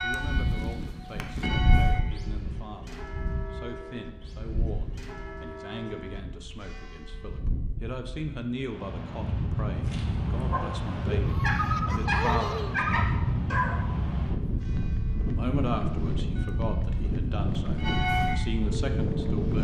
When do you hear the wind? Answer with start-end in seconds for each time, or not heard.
0.1-19.5.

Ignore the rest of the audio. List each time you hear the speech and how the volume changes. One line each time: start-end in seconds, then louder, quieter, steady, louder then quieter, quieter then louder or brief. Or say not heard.
0.0-13.2 louder
15.2-19.5 quieter then louder.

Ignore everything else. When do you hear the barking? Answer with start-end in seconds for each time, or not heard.
9.8-13.8.